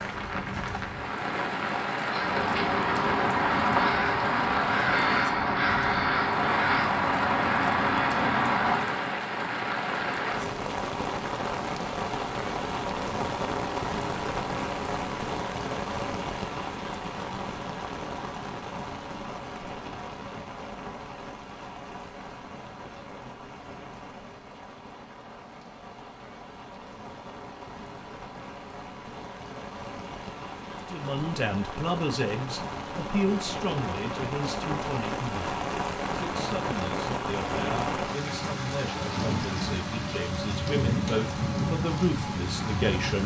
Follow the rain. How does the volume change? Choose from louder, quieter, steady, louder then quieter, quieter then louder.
quieter then louder.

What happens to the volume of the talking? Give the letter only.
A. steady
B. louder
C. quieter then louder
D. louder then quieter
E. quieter
C.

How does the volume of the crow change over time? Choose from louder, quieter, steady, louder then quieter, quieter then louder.
steady.